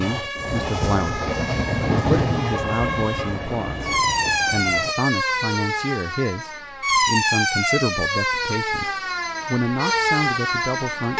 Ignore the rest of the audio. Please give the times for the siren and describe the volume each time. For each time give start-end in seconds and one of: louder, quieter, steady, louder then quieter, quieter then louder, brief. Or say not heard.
0.0-11.1 louder.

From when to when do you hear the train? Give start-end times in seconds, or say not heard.
0.0-5.0.